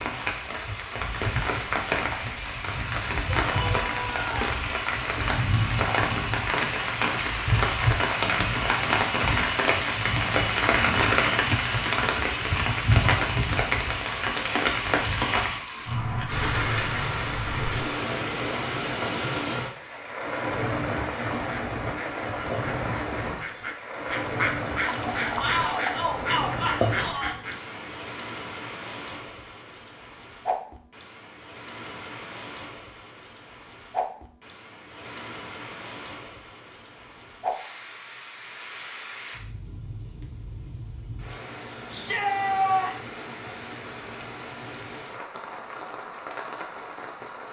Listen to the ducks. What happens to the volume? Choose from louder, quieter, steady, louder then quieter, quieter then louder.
louder.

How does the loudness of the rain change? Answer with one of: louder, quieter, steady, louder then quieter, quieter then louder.
quieter.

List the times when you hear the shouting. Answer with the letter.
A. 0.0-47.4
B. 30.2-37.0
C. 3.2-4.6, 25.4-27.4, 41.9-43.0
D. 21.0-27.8
C.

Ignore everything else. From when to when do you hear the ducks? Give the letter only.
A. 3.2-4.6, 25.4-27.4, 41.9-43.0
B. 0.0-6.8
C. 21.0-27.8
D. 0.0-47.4
C.